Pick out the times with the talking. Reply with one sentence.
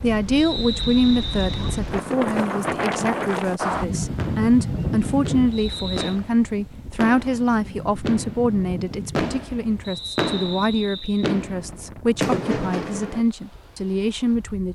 The talking can be heard from 0.0 to 14.7 s.